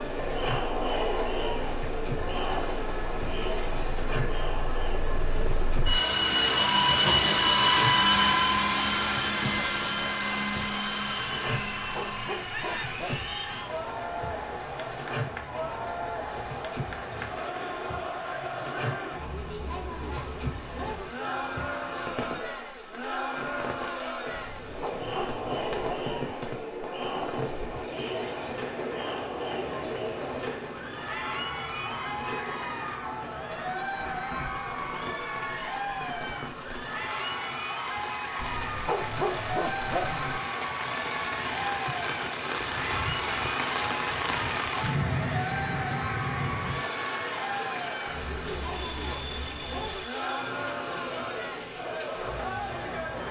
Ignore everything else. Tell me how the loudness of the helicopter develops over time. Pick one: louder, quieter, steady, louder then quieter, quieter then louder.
louder then quieter.